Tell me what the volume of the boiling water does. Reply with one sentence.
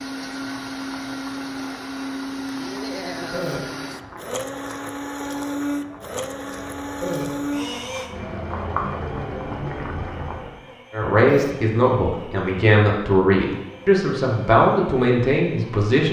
The loudness of the boiling water goes up.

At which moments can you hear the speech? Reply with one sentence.
The speech can be heard from 10.9 to 16.0 s.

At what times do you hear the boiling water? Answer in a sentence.
You can hear the boiling water from 0.0 to 10.6 s.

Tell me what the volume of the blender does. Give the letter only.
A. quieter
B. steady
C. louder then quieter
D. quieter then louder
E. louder
A.